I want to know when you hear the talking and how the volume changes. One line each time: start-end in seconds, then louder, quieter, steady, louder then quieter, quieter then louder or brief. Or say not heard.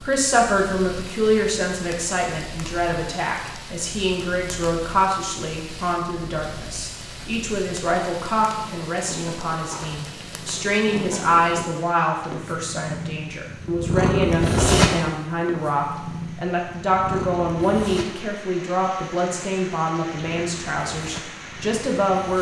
0.0-22.3 steady.